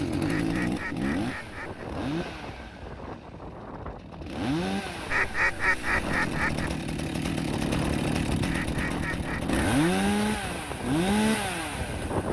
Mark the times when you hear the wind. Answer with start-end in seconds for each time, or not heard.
0.0-12.2.